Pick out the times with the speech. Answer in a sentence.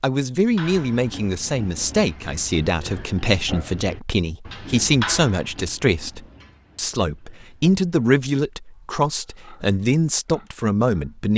You can hear the speech from 0.0 to 11.3 s.